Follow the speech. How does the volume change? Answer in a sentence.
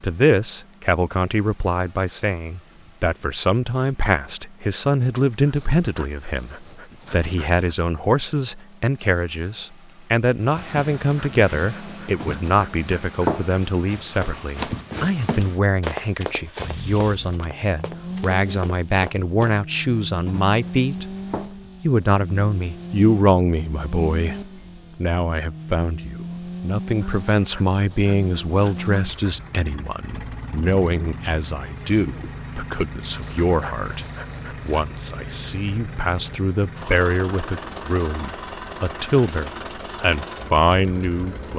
The loudness of the speech stays about the same.